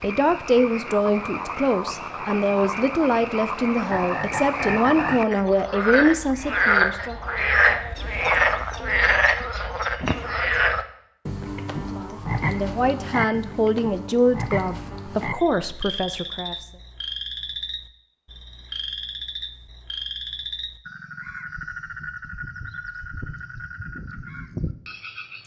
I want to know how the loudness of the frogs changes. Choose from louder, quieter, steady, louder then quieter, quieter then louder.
louder then quieter.